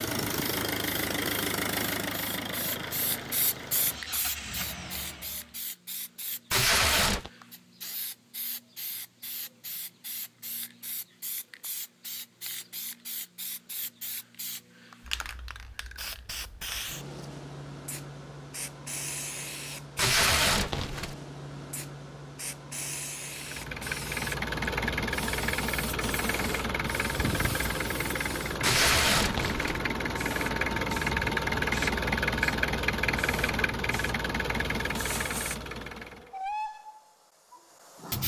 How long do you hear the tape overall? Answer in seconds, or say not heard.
3 s.